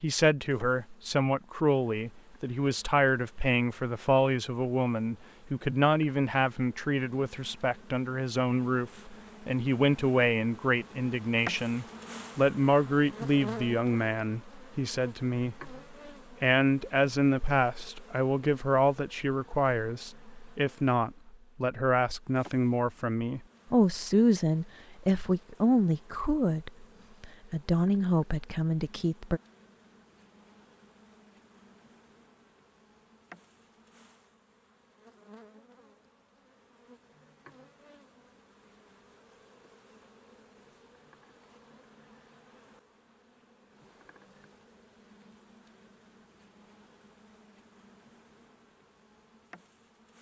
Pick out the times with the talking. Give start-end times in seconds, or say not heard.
0.0-15.8, 16.4-29.4.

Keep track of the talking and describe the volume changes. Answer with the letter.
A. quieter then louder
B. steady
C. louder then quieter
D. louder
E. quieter
B.